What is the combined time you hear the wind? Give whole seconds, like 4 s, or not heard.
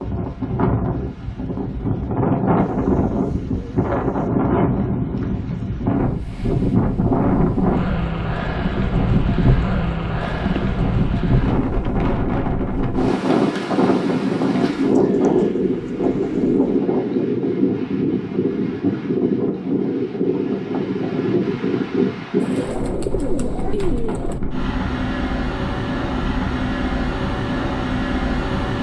29 s.